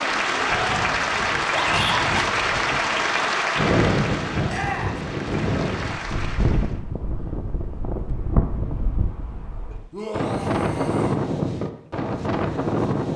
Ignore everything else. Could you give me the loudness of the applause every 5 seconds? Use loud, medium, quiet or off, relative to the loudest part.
loud, medium, off.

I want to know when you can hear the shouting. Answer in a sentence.
You can hear the shouting from 1.5 to 2.3 s, from 4.5 to 5.0 s and from 9.9 to 11.2 s.